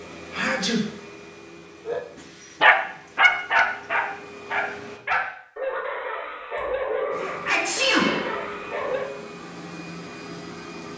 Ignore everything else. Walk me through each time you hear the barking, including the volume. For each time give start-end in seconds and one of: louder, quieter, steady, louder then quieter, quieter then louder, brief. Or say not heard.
1.9-9.1 quieter.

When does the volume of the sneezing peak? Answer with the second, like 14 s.
8 s.